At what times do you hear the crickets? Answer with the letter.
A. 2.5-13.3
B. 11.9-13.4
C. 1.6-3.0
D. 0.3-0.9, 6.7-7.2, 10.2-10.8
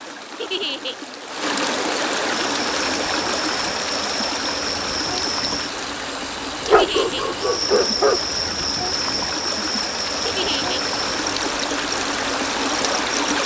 A.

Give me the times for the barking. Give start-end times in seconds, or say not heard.
6.7-8.2.